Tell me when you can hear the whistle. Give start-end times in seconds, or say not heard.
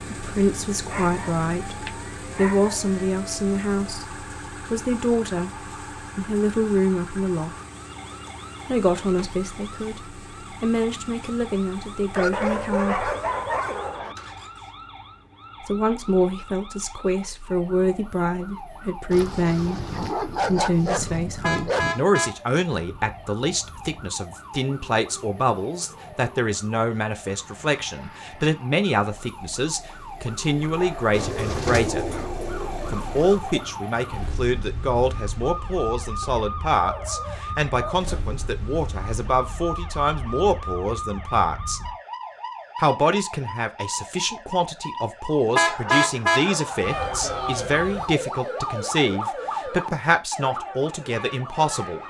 not heard.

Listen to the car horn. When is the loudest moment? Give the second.
46 s.